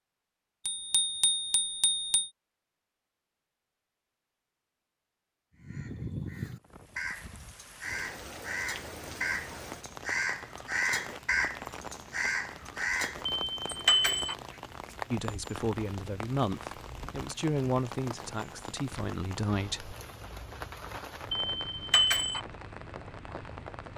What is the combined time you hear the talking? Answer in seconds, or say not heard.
5 s.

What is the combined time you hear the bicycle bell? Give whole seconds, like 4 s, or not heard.
4 s.